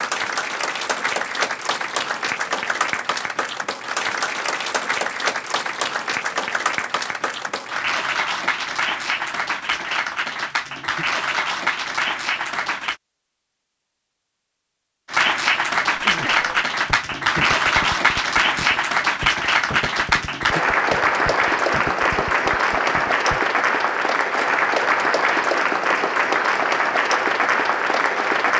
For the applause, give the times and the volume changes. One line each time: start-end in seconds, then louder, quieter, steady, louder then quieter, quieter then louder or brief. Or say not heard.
0.0-12.9 steady
15.1-28.5 steady.